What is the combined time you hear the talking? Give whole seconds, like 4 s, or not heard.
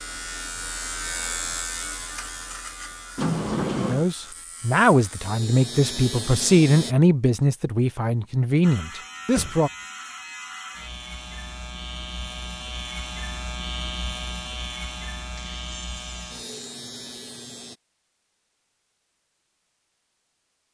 6 s.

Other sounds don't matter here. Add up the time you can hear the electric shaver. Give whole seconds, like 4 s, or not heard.
16 s.